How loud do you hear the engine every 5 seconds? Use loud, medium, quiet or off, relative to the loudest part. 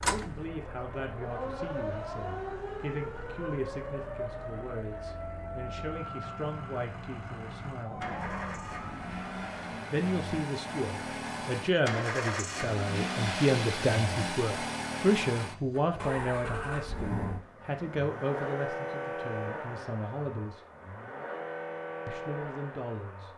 quiet, medium, loud, loud, medium.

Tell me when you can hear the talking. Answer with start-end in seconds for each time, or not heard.
0.0-8.1, 9.9-20.6, 22.1-23.3.